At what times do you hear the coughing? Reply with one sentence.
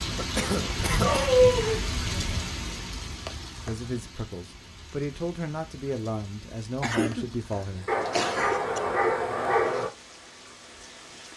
The coughing can be heard from 0.1 to 1.3 s and from 6.8 to 8.8 s.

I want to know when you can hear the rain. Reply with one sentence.
You can hear the rain from 0.0 to 11.3 s.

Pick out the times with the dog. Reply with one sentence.
You can hear the dog from 0.8 to 2.5 s and from 7.8 to 9.9 s.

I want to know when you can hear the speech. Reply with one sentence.
The speech can be heard from 3.6 to 7.9 s.